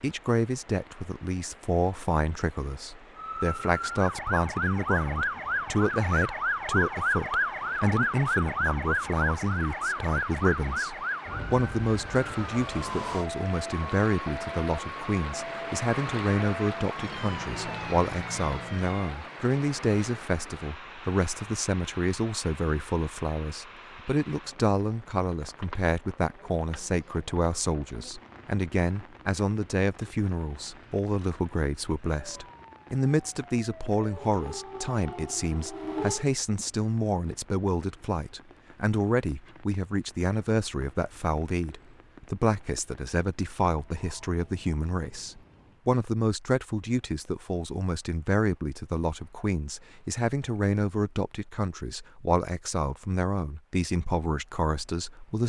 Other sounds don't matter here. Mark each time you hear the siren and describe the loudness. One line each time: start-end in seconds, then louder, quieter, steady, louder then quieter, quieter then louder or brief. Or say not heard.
3.1-19.2 quieter
32.2-36.2 louder.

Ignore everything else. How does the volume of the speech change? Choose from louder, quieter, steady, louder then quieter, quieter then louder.
steady.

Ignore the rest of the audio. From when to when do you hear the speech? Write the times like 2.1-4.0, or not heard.
0.0-55.4.